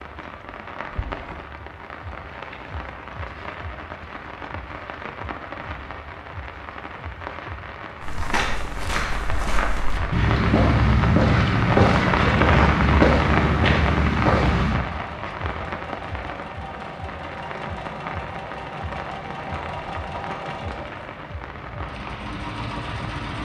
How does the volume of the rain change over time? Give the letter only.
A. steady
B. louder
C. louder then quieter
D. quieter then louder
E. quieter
C.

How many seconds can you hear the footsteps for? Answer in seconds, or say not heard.
7 s.